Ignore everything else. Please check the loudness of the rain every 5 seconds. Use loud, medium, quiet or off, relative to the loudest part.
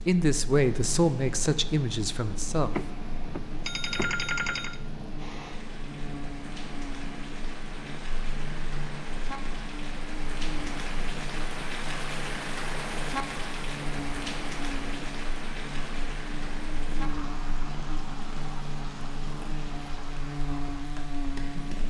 medium, medium, loud, medium, medium.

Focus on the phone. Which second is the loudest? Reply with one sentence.
The volume of the phone peaks at 4 seconds.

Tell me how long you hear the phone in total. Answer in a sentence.
You can hear the phone for 2 seconds altogether.